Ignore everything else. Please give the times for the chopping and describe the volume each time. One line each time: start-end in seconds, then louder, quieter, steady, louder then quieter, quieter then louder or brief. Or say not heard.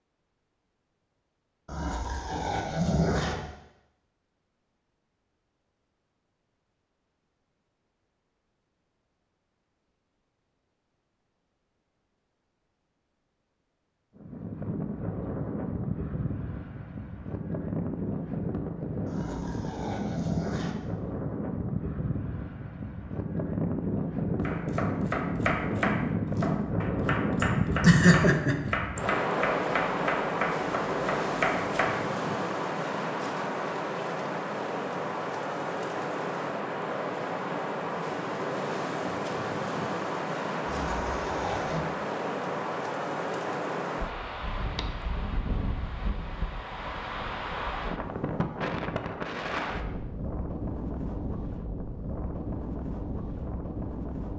24.4-32.0 steady.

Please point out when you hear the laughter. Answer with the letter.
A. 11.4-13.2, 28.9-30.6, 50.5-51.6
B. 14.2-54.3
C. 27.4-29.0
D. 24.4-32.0
C.